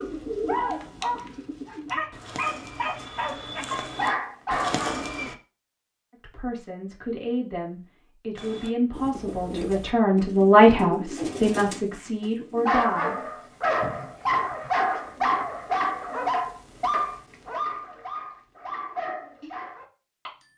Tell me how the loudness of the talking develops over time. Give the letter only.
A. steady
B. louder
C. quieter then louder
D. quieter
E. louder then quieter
E.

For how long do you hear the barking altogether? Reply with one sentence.
You can hear the barking for 13 seconds altogether.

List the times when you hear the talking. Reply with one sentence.
The talking can be heard from 6.2 to 13.2 s.